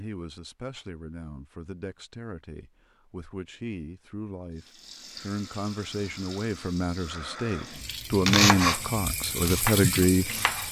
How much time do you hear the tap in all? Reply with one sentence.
You can hear the tap for 6 seconds altogether.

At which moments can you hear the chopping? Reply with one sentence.
The chopping can be heard from 8.1 to 10.6 s.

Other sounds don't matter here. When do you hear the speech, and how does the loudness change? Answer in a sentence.
The speech can be heard from 0.0 to 10.6 s, getting louder.